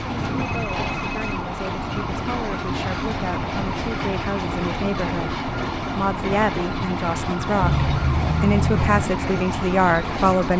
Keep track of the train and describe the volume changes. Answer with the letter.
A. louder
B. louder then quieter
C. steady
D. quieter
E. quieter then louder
C.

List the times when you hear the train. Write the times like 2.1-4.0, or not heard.
0.0-10.5.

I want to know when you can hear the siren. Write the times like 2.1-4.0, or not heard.
0.0-10.5.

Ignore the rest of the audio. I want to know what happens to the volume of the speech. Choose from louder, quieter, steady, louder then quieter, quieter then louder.
louder.